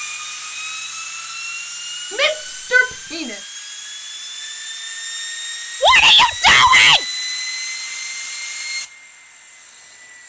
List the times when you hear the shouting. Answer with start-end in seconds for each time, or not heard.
2.1-3.4, 5.8-7.0.